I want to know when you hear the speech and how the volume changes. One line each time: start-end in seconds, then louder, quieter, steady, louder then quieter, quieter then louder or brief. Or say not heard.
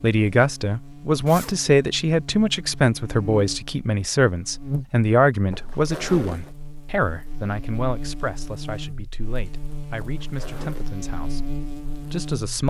0.0-12.6 quieter.